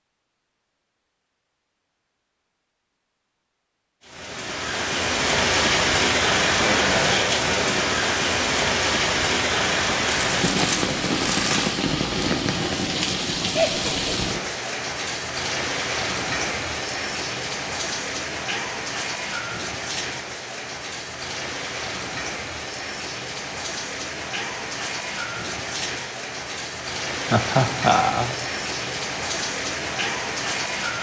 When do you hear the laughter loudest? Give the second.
28 s.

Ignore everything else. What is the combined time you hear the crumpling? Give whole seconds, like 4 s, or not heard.
2 s.